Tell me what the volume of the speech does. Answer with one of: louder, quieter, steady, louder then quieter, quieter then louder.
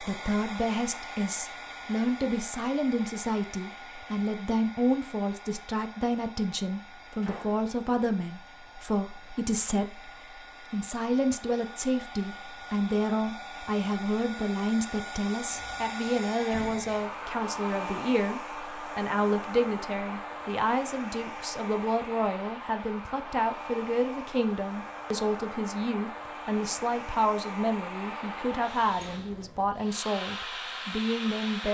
steady.